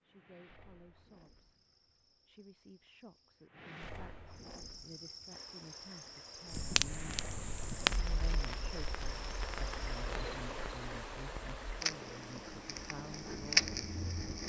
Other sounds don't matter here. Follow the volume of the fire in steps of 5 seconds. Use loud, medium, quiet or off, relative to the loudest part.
off, loud, loud.